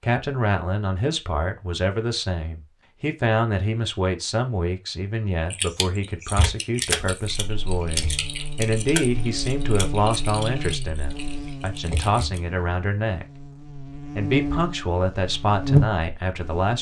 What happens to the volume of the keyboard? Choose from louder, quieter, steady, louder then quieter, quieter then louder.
quieter.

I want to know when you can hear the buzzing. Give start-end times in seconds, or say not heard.
7.1-16.7.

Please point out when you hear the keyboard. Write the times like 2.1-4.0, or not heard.
5.5-12.4.